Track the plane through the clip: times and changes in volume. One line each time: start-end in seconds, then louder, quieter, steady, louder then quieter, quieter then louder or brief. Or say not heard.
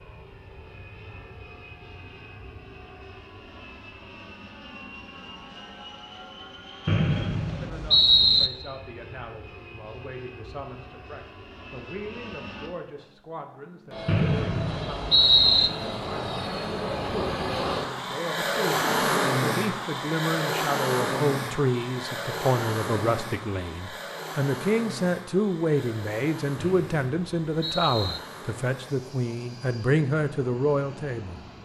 0.0-31.6 louder then quieter.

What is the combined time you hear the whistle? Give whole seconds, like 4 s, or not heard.
5 s.